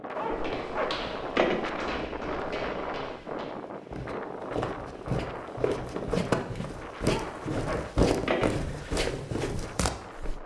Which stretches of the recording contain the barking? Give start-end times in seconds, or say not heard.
0.1-1.8, 7.0-8.9.